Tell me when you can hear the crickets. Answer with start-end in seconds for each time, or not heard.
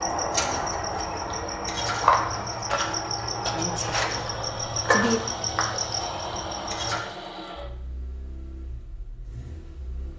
0.0-7.0.